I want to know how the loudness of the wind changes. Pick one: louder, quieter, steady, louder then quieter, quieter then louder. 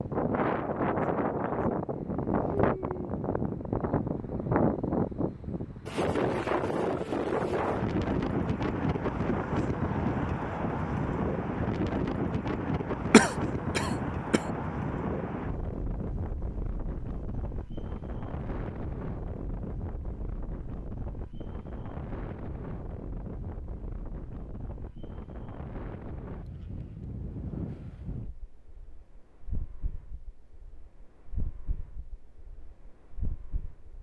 quieter.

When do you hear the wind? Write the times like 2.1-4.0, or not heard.
0.0-33.9.